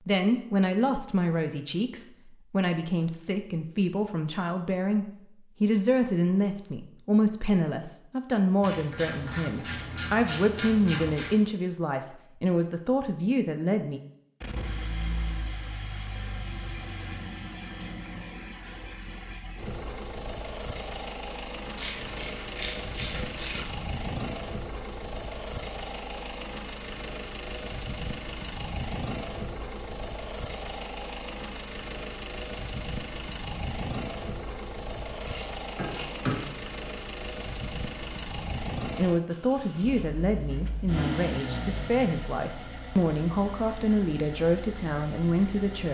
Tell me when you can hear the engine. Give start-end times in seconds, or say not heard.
14.4-45.8.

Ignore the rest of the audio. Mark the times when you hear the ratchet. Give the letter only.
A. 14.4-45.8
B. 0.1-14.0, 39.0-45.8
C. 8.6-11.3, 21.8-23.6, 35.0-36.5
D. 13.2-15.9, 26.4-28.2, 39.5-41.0
C.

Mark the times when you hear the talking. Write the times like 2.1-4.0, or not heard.
0.1-14.0, 39.0-45.8.